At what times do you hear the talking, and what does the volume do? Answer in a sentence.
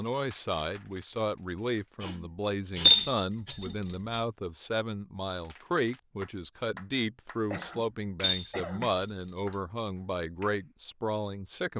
You can hear the talking from 0.0 to 11.7 s, at a steady volume.